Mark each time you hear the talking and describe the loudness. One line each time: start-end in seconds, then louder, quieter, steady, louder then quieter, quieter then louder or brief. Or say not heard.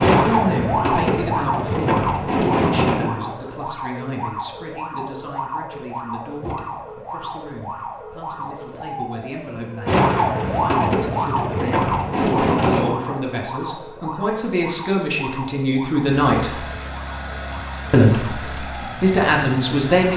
0.2-16.6 quieter then louder
17.9-20.1 brief.